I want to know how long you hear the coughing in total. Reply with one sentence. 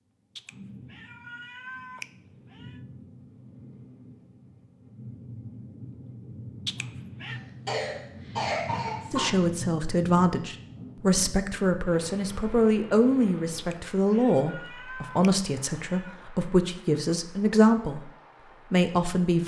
You can hear the coughing for 2 seconds altogether.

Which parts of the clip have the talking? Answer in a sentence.
You can hear the talking from 9.1 to 18.1 s and from 18.7 to 19.4 s.